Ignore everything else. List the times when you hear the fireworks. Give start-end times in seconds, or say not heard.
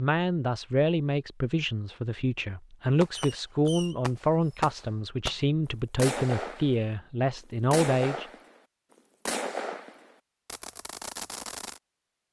3.0-5.3, 6.0-6.8, 7.7-8.5, 9.2-11.8.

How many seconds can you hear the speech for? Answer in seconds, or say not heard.
8 s.